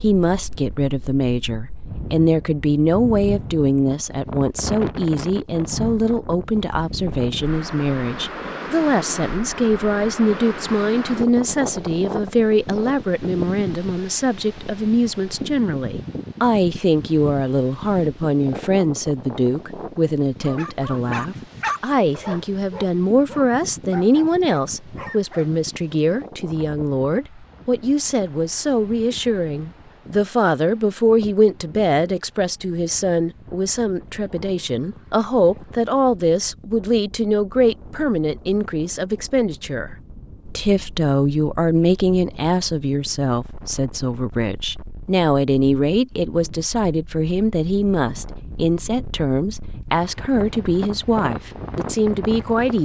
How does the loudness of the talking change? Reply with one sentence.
The loudness of the talking stays about the same.